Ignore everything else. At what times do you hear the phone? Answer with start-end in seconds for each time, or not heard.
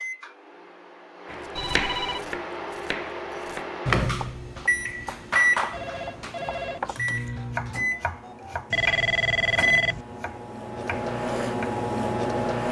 1.6-2.2, 5.7-6.8, 8.7-10.1.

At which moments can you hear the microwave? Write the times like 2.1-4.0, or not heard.
0.0-12.6.